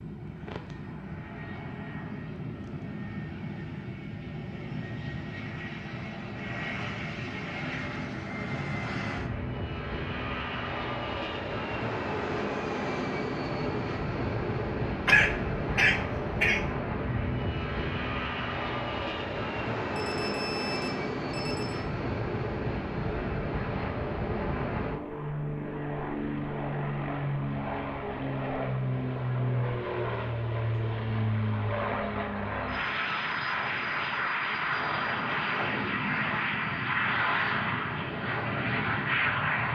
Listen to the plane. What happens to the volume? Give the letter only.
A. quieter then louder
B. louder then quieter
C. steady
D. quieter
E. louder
E.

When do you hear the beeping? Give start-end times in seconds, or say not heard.
19.9-21.8.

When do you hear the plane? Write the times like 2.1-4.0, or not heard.
0.0-39.7.